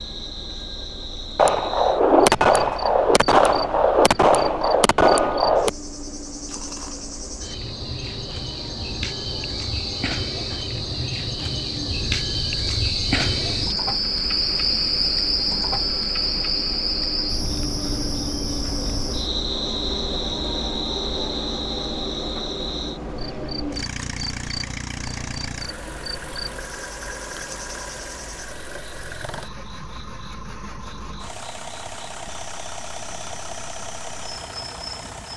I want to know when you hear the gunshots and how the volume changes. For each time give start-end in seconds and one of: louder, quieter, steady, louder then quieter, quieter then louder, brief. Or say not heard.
1.4-5.7 steady.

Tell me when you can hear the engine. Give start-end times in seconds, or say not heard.
0.0-35.3.